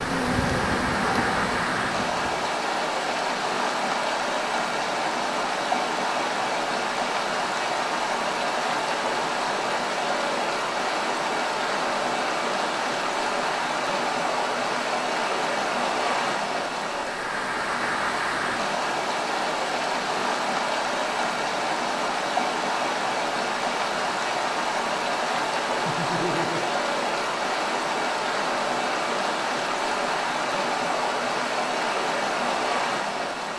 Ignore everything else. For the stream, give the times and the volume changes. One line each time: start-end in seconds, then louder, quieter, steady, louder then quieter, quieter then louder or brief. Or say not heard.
0.0-33.5 steady.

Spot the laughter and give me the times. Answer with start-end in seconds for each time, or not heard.
25.9-26.7.